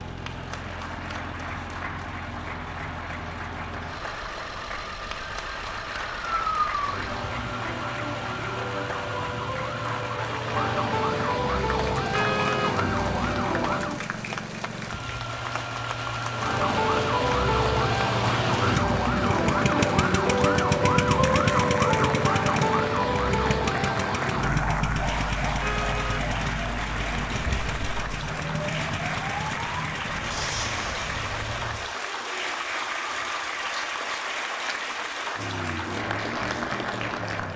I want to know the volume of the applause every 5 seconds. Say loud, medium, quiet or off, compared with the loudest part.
medium, medium, medium, loud, loud, loud, loud, loud.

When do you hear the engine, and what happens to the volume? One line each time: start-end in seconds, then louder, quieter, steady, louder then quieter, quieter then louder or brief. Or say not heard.
0.0-37.5 louder then quieter.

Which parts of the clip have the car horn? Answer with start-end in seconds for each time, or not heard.
12.1-12.8, 25.6-26.2.